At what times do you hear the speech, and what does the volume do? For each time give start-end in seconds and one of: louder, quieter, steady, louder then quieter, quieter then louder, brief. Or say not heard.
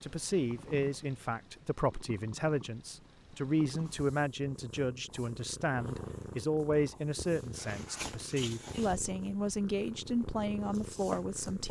0.0-11.6 steady.